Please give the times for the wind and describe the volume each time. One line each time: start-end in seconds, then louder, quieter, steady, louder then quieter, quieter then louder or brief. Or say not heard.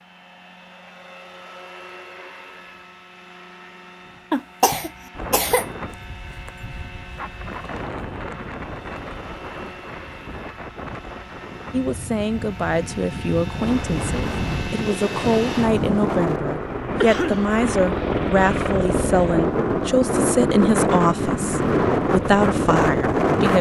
5.2-23.5 louder.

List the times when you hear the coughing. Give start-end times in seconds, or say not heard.
4.3-5.7, 17.0-17.5.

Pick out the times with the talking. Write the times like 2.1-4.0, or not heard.
11.7-23.5.